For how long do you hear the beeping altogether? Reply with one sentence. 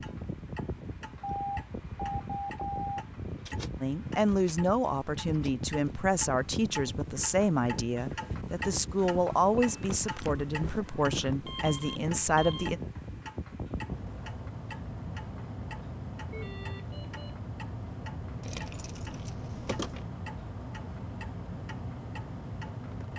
The beeping can be heard for 4 seconds in total.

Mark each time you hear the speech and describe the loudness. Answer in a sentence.
You can hear the speech from 3.8 to 12.8 s, at a steady volume.